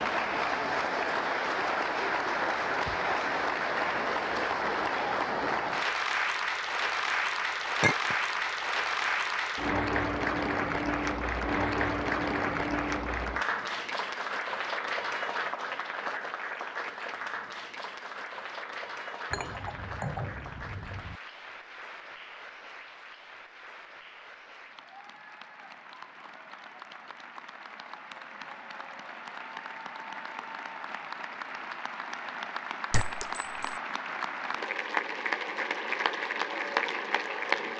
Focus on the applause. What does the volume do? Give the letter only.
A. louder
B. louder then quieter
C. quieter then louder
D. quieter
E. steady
C.